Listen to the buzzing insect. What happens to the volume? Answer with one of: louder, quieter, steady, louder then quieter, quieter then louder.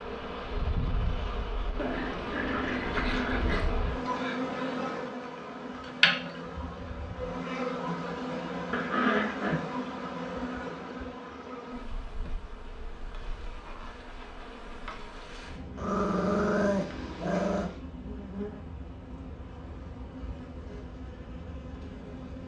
quieter.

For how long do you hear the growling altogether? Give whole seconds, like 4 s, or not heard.
5 s.